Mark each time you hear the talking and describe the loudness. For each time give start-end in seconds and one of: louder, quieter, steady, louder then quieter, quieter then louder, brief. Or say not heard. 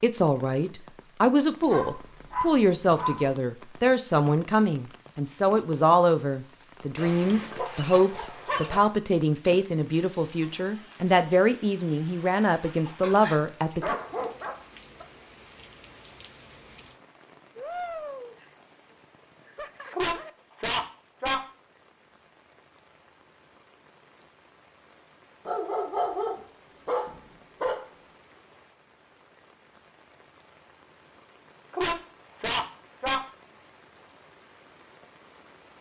0.0-13.9 steady.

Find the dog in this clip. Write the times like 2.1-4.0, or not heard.
1.6-3.3, 7.0-8.9, 13.0-15.1, 19.9-21.4, 25.4-27.9, 31.7-33.2.